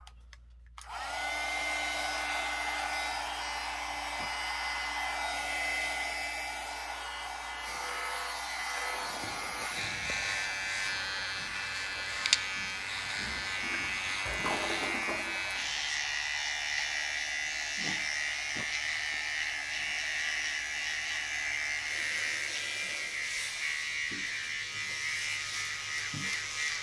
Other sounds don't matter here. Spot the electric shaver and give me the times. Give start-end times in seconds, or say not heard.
7.6-26.7.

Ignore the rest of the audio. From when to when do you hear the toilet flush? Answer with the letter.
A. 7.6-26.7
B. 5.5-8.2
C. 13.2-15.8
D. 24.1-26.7
C.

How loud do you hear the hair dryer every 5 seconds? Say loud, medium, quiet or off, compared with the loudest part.
loud, loud, medium, medium, medium, off.